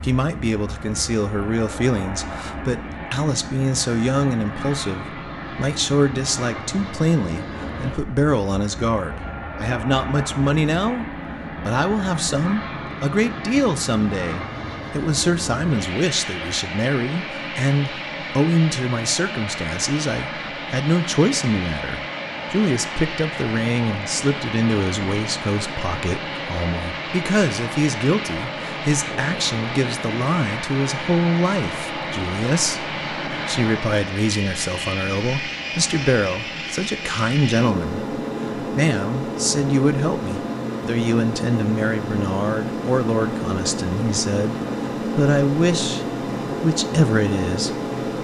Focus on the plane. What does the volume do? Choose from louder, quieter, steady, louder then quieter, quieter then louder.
louder.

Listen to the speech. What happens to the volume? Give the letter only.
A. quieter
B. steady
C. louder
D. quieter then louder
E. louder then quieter
B.